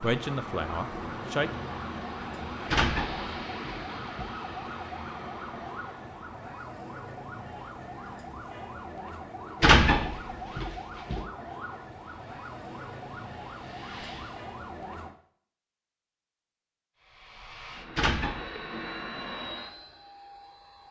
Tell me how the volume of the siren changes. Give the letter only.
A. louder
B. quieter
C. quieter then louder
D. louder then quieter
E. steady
E.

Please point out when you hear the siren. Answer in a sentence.
The siren can be heard from 0.0 to 15.2 s.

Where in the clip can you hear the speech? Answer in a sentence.
You can hear the speech from 0.0 to 1.5 s.